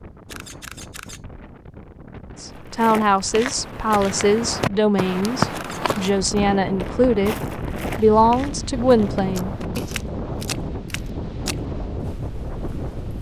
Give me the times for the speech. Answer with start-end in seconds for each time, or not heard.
2.4-9.8.